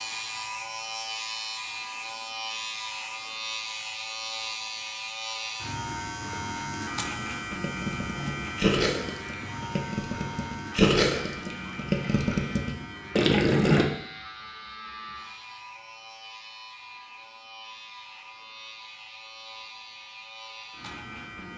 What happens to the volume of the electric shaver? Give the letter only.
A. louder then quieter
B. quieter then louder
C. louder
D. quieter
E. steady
D.